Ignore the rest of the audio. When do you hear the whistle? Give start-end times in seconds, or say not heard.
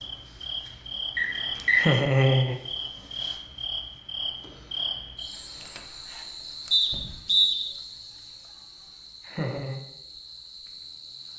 1.1-1.9, 6.7-7.5.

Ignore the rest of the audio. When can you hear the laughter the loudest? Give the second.
2 s.